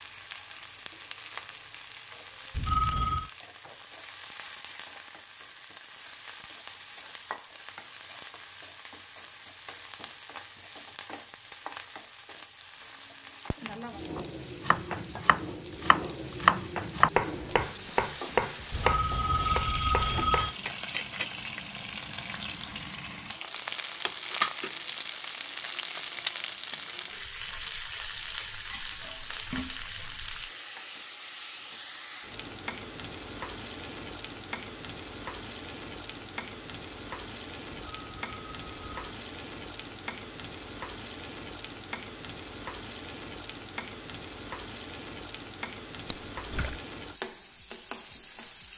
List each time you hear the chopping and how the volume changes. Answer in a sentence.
You can hear the chopping from 13.6 to 20.8 s, getting louder then quieter.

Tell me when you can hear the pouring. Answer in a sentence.
The pouring can be heard from 46.0 to 46.8 s.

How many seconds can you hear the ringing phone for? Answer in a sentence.
You can hear the ringing phone for 4 seconds altogether.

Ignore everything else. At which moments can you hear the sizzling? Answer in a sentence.
The sizzling can be heard from 0.0 to 48.7 s.